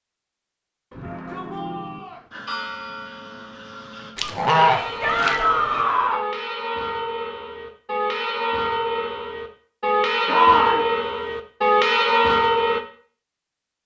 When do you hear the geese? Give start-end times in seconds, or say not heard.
4.2-5.8.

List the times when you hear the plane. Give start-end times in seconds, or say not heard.
not heard.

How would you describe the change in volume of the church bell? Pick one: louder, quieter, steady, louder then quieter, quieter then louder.
louder.